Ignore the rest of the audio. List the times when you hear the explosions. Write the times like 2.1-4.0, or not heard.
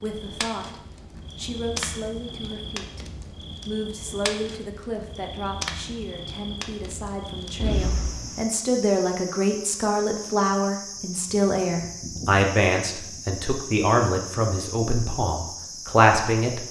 7.5-8.4.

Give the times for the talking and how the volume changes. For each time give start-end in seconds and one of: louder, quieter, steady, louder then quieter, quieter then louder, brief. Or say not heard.
0.0-0.8 brief
1.4-3.0 brief
3.6-16.6 louder.